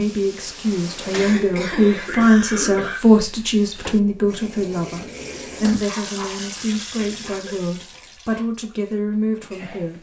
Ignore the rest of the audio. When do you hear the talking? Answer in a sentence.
You can hear the talking from 0.0 to 9.9 s.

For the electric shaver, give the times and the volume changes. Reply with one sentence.
You can't hear the electric shaver here.